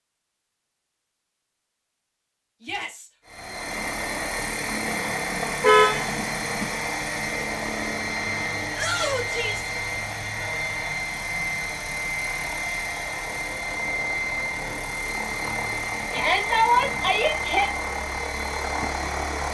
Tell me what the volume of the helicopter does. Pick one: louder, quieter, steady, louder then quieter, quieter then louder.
steady.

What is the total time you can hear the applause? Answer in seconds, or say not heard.
not heard.